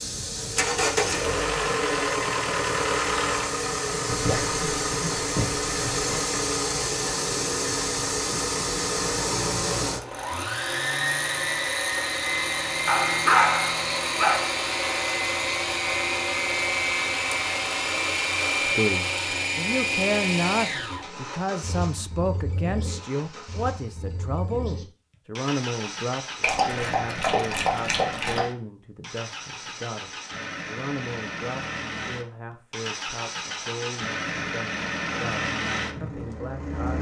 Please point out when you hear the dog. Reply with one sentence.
The dog can be heard from 4.0 to 6.2 s, from 12.8 to 14.4 s and from 26.4 to 28.4 s.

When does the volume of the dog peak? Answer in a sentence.
The loudest moment of the dog is at 13 seconds.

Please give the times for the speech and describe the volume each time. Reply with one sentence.
The speech can be heard from 18.6 to 36.9 s, getting quieter.